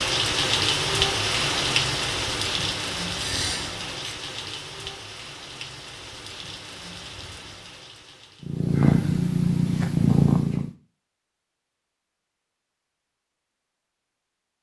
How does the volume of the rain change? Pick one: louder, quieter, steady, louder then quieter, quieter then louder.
quieter.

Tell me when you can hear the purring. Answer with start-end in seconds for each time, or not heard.
8.4-10.7.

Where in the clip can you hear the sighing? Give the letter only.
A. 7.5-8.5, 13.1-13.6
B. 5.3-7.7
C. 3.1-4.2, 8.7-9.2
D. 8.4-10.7
C.